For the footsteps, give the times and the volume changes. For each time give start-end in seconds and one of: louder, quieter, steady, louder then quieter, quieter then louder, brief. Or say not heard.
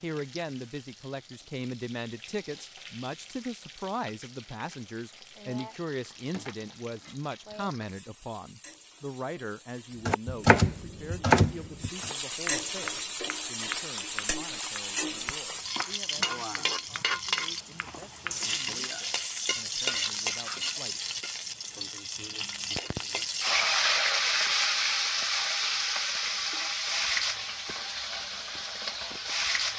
not heard.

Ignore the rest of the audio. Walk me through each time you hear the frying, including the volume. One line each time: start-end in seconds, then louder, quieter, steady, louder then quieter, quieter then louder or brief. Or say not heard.
0.0-29.7 louder.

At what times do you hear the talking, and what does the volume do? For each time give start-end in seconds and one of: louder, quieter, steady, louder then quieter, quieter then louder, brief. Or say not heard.
0.0-21.1 quieter.